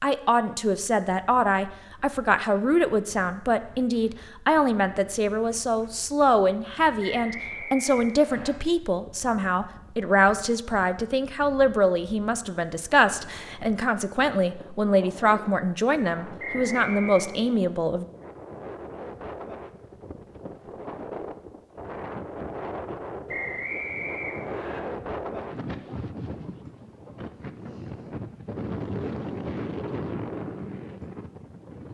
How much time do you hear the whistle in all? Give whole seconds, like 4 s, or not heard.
4 s.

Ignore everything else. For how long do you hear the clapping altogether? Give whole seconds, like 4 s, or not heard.
not heard.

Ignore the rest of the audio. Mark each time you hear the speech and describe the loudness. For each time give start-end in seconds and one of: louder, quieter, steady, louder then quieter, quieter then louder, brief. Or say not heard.
0.0-18.1 steady.